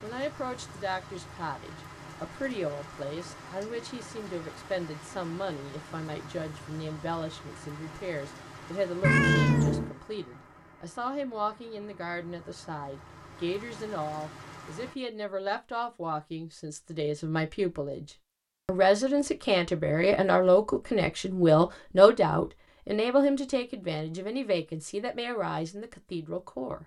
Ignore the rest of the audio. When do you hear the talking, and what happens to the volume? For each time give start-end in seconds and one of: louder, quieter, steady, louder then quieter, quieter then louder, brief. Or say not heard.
0.0-26.8 louder.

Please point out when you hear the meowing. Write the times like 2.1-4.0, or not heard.
9.0-9.9.